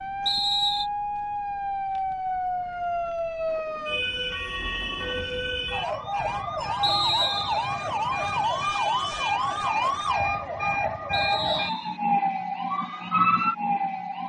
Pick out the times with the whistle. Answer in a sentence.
The whistle can be heard from 0.2 to 0.9 s, from 6.8 to 7.7 s and from 11.1 to 12.0 s.